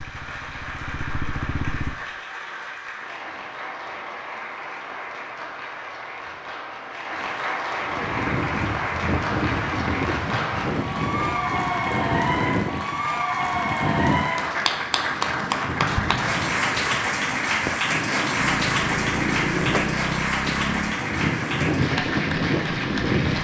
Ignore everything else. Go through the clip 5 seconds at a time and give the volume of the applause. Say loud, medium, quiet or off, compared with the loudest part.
medium, medium, loud, loud, loud.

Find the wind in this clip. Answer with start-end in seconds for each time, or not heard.
7.8-23.4.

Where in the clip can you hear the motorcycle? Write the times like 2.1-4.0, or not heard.
0.0-1.9, 18.4-20.9.